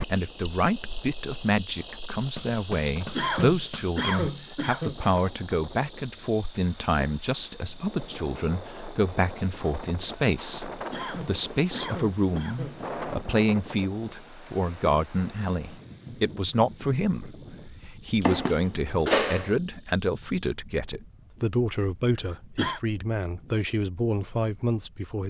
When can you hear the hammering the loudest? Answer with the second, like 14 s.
19 s.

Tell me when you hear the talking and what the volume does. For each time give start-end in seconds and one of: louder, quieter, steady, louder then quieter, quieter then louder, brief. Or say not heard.
0.0-25.2 steady.